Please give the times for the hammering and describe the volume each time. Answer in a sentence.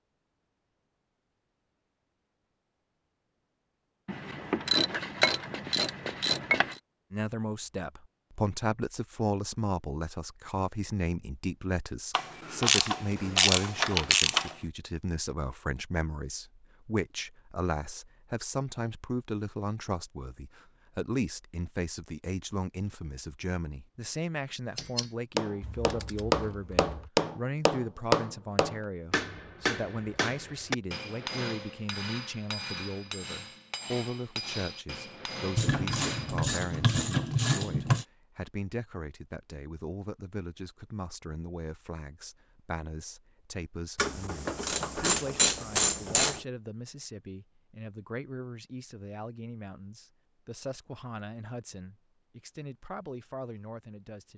You can hear the hammering from 24.8 to 36.5 s, getting quieter.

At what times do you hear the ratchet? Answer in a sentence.
The ratchet can be heard from 4.0 to 6.8 s, from 12.2 to 14.5 s, from 25.6 to 27.1 s, from 35.5 to 38.0 s and from 44.0 to 46.4 s.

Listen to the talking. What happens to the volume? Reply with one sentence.
The volume of the talking goes down.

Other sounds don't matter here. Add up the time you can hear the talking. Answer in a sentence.
The talking can be heard for 47 seconds in total.